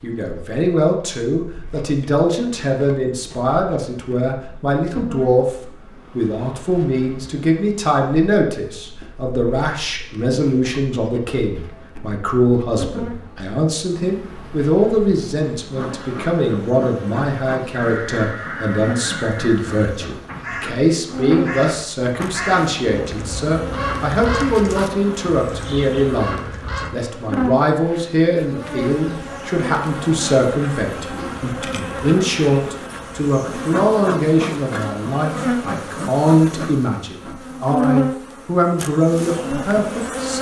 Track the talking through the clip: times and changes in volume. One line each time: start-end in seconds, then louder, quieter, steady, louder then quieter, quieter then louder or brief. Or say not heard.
0.0-5.5 steady
6.2-40.3 steady.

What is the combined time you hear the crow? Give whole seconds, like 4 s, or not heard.
9 s.